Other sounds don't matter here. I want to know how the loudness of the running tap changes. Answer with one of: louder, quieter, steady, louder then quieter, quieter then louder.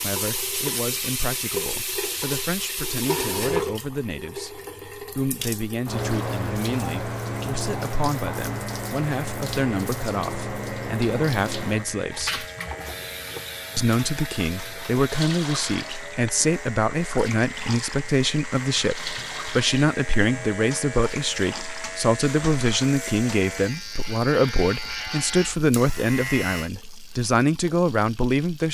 quieter.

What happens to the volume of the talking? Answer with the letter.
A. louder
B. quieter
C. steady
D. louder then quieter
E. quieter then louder
A.